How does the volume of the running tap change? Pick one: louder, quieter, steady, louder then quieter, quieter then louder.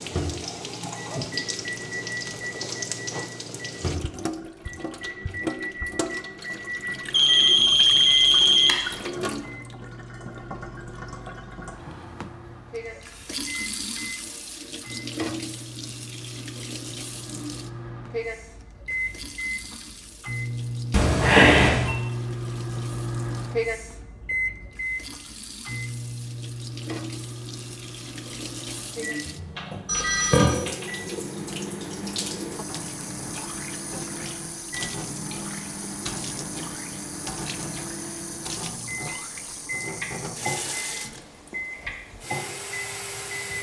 quieter then louder.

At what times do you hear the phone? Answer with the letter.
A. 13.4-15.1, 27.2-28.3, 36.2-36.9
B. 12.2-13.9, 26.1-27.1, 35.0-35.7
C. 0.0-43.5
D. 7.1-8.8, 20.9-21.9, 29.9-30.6
D.